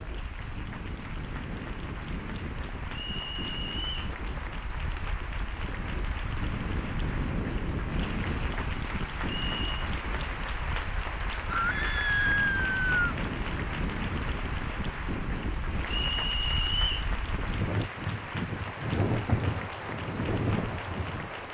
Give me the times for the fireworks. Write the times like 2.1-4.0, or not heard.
not heard.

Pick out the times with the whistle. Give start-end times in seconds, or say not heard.
2.9-4.2, 9.2-9.7, 15.9-17.1.